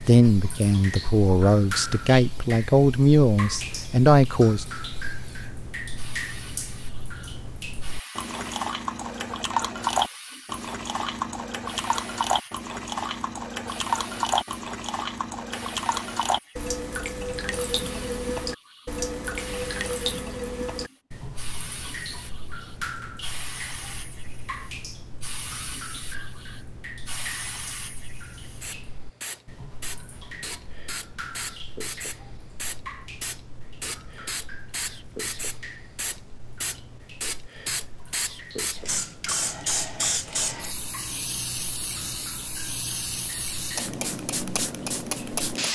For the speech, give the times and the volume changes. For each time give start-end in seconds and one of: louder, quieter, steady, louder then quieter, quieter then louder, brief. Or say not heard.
0.0-4.7 louder.